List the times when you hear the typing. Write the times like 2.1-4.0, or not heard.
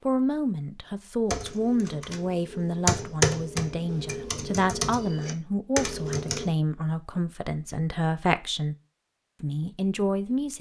1.3-6.5.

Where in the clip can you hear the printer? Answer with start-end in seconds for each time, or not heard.
not heard.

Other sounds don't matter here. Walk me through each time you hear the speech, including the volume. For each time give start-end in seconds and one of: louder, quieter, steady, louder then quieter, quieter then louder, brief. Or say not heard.
0.1-8.8 steady
9.4-10.5 brief.